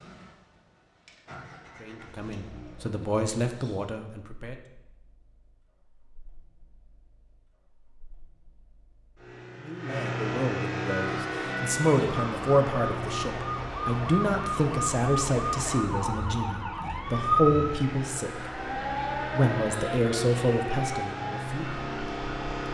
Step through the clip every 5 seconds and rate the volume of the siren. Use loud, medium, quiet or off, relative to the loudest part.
off, off, loud, loud, medium.